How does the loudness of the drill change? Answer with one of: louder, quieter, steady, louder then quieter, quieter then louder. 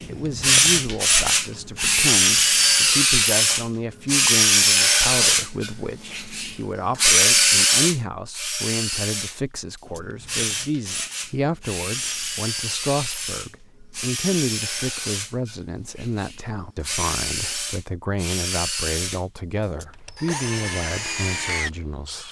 quieter.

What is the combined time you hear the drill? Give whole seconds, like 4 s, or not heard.
22 s.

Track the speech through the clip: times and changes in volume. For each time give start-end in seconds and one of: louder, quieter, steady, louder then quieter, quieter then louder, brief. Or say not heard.
0.1-22.2 steady.